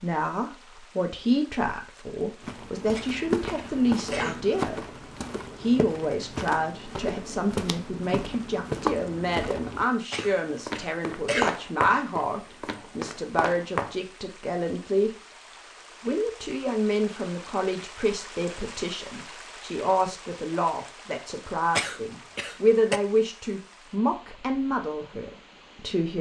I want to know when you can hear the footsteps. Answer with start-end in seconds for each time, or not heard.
2.4-13.9.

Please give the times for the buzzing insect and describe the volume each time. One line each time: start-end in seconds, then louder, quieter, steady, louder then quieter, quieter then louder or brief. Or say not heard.
not heard.